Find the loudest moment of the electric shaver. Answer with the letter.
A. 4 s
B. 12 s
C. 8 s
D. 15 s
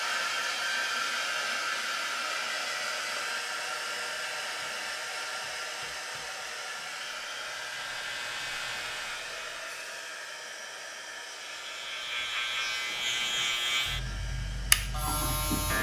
D.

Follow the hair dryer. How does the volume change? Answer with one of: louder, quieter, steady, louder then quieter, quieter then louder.
quieter.